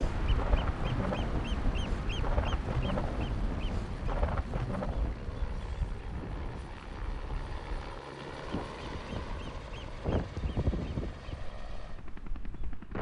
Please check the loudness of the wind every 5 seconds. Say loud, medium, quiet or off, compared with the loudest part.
loud, medium, loud.